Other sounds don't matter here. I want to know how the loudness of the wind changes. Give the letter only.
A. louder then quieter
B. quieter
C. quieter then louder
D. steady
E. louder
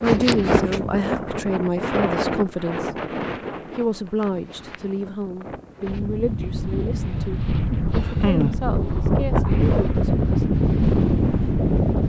C.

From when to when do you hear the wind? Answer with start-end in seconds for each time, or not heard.
0.0-12.0.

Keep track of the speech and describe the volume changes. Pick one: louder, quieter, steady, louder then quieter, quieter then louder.
quieter.